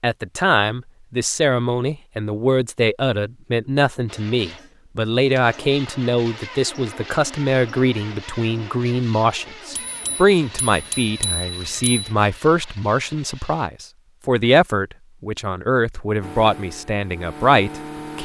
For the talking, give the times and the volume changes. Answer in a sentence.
The talking can be heard from 0.0 to 18.1 s, at a steady volume.